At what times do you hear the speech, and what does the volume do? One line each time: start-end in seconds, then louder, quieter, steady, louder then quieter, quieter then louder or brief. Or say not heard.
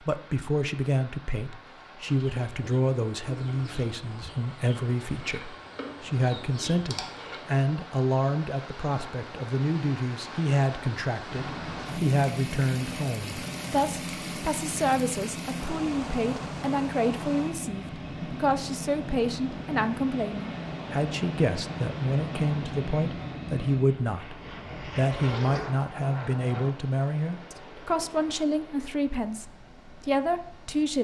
0.1-30.9 steady.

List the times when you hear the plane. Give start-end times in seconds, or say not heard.
11.2-26.7.